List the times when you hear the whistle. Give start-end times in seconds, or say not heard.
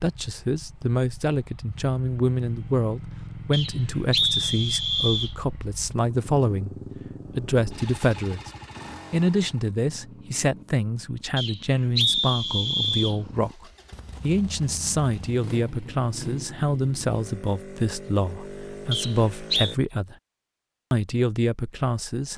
3.5-5.3, 11.3-13.2, 18.9-19.8.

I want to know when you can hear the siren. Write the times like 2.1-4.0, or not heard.
not heard.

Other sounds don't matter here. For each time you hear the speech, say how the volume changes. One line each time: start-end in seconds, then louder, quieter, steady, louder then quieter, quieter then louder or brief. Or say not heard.
0.0-6.8 steady
7.3-8.5 brief
9.1-20.1 steady
20.9-22.3 brief.